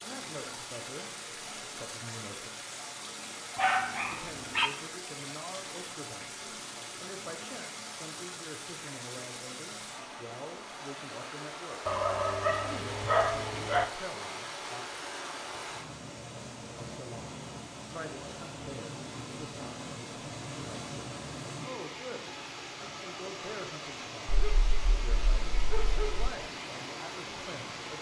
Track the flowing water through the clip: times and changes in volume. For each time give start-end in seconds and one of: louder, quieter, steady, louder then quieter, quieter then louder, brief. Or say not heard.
0.0-27.9 steady.